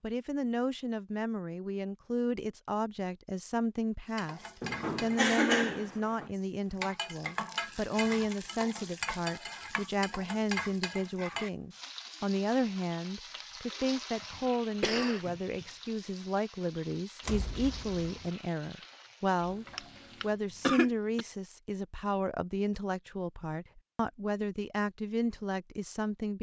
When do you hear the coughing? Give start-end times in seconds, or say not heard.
4.6-6.3, 14.3-15.7, 19.6-21.2.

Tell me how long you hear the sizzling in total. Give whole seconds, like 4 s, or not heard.
16 s.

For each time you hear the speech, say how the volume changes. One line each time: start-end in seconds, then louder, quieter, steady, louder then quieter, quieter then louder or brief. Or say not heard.
0.0-26.3 steady.